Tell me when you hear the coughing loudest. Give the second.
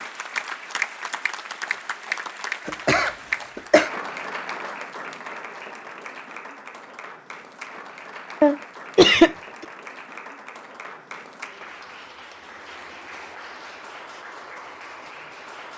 9 s.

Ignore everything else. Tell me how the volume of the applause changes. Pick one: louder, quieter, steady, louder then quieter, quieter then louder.
quieter.